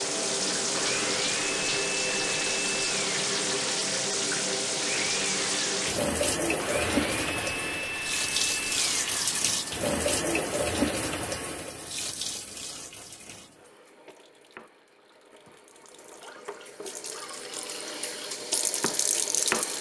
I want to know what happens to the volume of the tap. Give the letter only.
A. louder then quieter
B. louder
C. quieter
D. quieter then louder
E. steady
D.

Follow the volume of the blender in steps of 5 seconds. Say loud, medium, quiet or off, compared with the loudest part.
loud, loud, off, off.